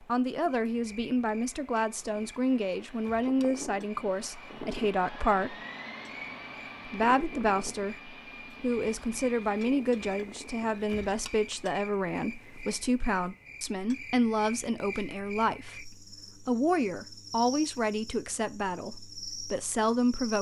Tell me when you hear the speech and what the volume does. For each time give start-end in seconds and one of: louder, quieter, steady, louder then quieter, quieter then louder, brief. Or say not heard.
0.0-5.5 steady
6.8-20.3 steady.